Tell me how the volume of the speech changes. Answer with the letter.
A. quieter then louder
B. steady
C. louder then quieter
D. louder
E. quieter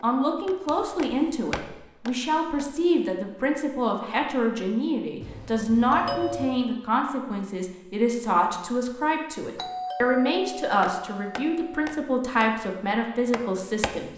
B.